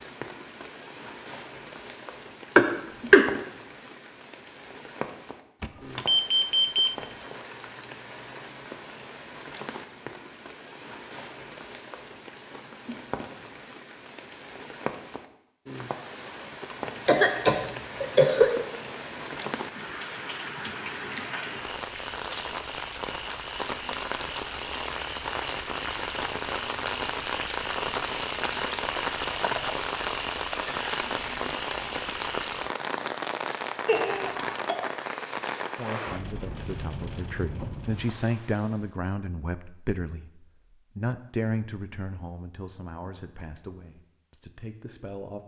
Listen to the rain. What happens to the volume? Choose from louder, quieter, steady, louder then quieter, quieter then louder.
louder.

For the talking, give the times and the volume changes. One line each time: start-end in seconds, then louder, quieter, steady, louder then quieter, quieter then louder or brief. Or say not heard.
35.8-45.4 louder then quieter.